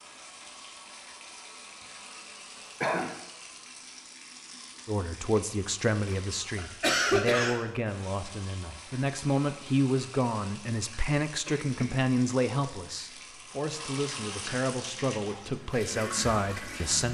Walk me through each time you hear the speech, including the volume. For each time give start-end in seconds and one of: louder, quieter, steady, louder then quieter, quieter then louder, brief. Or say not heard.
4.8-17.1 steady.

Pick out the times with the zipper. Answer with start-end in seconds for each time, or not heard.
not heard.